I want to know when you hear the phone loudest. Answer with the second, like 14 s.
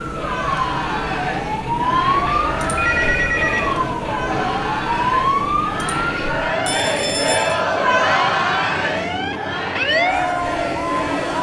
3 s.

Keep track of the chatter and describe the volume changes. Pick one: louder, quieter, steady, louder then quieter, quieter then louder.
louder then quieter.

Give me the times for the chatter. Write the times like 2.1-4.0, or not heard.
0.0-11.3.